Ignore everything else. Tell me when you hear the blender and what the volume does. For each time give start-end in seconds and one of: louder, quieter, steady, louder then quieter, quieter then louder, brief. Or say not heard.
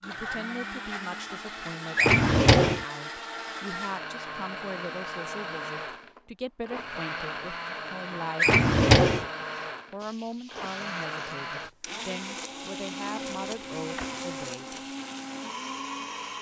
0.0-16.3 steady.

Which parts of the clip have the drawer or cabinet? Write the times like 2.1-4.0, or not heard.
1.9-2.9, 8.3-9.2, 13.2-14.2.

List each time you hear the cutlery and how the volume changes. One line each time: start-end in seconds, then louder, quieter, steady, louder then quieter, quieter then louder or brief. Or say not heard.
not heard.